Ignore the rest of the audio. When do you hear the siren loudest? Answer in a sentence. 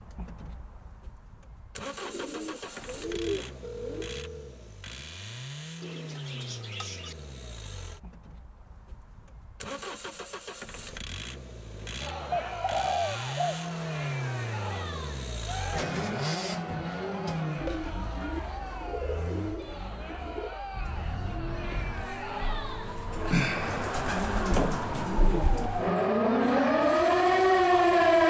The volume of the siren peaks at 28 seconds.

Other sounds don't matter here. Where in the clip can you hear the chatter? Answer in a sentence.
The chatter can be heard from 11.9 to 27.9 s.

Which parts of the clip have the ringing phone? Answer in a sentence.
The ringing phone can be heard from 3.6 to 4.5 s.